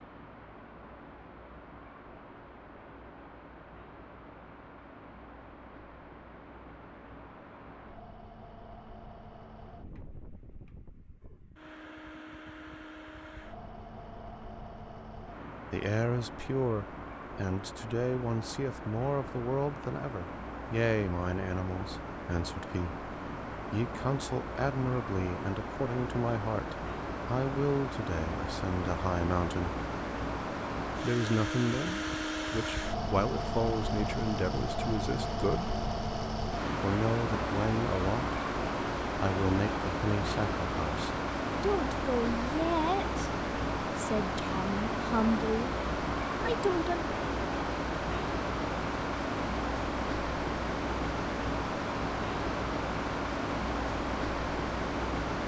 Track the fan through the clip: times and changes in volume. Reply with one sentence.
The fan can be heard from 0.0 to 55.4 s, getting louder.